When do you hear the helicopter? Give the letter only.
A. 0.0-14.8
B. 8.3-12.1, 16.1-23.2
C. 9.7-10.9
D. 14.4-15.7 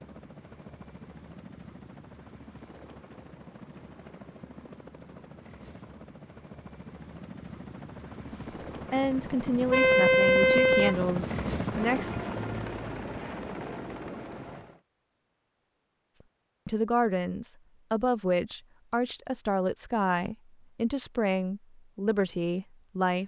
A.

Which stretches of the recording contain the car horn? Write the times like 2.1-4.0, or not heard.
9.7-10.9.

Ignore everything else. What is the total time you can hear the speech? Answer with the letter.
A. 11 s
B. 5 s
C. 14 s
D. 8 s
A.